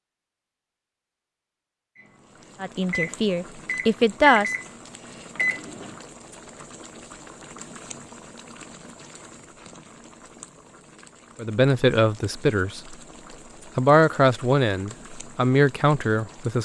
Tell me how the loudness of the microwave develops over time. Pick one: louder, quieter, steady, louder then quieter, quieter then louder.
steady.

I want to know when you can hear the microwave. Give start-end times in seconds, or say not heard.
1.9-6.0.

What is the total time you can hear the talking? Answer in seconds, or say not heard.
6 s.